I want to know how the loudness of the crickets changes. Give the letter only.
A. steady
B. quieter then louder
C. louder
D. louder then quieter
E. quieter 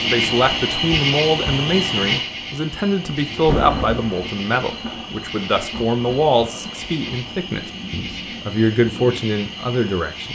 E.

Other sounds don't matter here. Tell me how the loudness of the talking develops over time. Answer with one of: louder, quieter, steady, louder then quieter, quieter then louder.
steady.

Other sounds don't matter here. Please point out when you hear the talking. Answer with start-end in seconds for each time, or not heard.
0.1-10.2.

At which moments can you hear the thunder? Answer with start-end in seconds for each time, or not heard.
3.4-7.2.